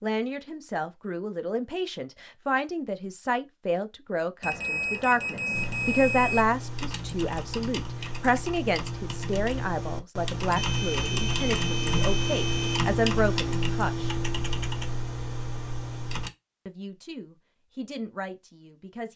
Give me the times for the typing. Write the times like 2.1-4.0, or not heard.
5.5-16.3.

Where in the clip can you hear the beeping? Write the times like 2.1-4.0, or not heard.
4.4-6.5, 10.6-12.9.